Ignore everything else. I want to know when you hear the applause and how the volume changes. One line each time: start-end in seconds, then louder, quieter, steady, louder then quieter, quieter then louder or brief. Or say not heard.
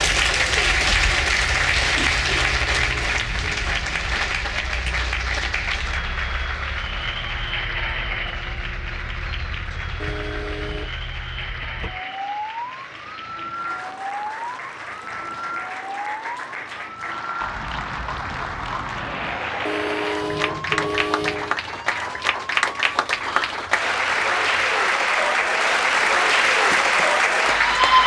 0.0-28.0 quieter then louder.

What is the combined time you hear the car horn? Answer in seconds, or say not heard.
4 s.